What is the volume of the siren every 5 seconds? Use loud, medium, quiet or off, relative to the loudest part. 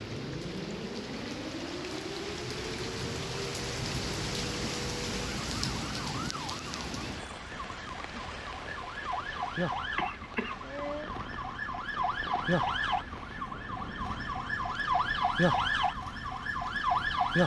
quiet, medium, medium, loud.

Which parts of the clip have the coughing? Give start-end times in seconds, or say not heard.
9.9-10.6.